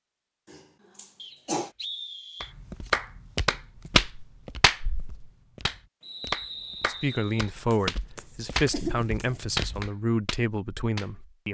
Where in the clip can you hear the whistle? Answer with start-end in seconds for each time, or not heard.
1.1-2.5, 6.0-7.5.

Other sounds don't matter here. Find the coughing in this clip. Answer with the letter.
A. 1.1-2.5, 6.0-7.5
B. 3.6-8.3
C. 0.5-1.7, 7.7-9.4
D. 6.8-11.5
C.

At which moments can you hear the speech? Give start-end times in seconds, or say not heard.
6.8-11.5.